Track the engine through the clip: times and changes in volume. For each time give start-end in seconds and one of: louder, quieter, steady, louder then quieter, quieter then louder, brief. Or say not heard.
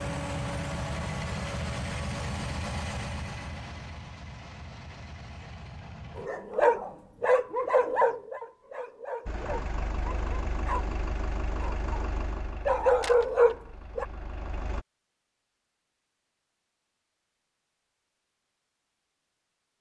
0.0-6.3 quieter
9.2-14.8 quieter.